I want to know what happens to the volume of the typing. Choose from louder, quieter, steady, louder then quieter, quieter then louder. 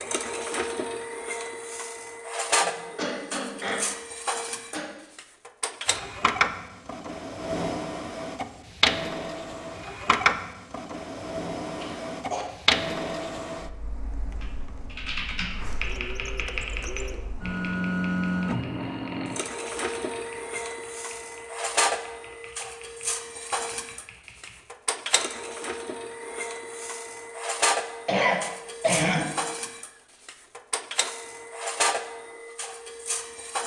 quieter.